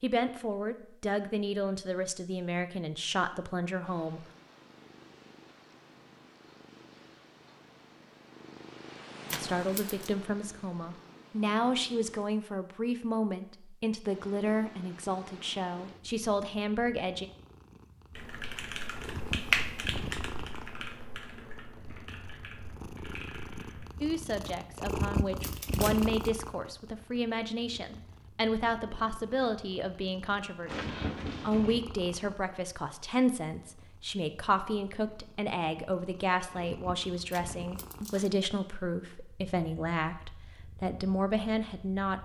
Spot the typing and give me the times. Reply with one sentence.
The typing can be heard from 18.1 to 23.9 s.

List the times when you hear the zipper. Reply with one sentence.
The zipper can be heard from 30.6 to 31.8 s.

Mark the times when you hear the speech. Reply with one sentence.
You can hear the speech from 0.0 to 4.2 s, from 9.3 to 17.3 s and from 24.0 to 42.2 s.